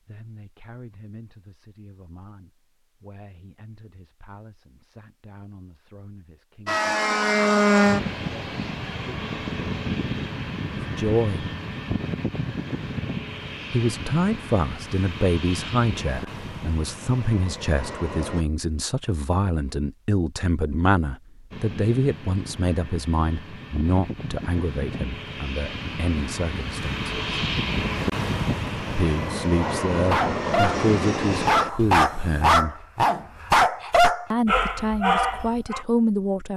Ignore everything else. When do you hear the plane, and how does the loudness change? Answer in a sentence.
You can hear the plane from 6.7 to 18.4 s, getting quieter; and from 21.5 to 32.5 s, getting louder.